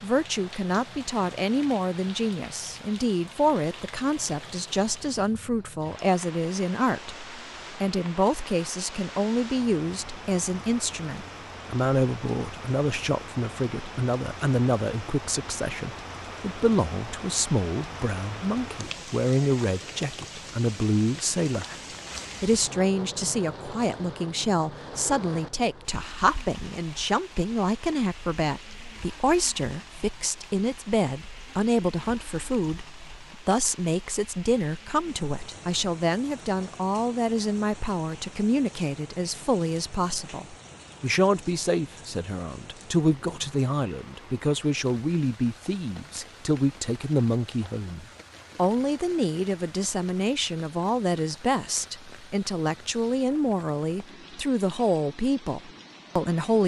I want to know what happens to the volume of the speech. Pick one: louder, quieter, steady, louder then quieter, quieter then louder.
steady.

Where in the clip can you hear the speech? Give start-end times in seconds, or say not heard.
0.0-21.8, 22.4-56.6.